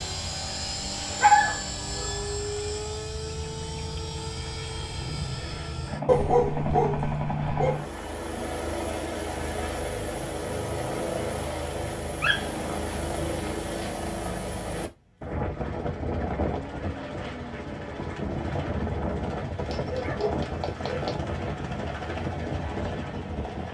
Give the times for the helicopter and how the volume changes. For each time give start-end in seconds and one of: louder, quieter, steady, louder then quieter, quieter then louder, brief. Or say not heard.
0.0-23.6 steady.